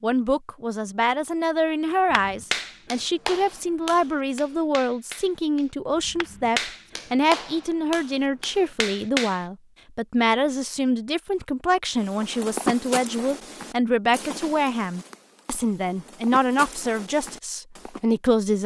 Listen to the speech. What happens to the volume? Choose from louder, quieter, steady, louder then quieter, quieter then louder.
steady.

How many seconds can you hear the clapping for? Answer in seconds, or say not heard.
7 s.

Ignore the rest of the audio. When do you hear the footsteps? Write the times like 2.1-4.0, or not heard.
11.9-18.0.